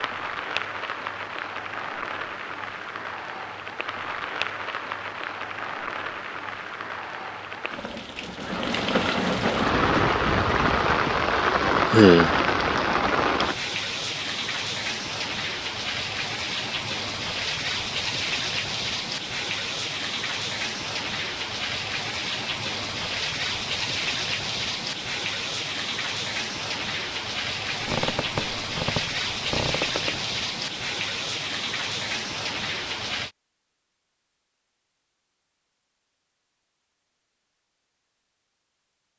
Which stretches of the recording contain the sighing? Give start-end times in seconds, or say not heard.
11.8-12.4.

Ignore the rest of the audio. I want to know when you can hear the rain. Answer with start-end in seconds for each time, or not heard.
0.0-33.3.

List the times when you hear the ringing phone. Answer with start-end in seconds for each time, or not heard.
not heard.